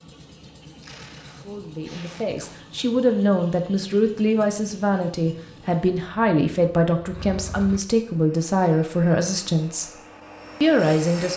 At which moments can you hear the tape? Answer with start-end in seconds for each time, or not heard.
0.8-2.5.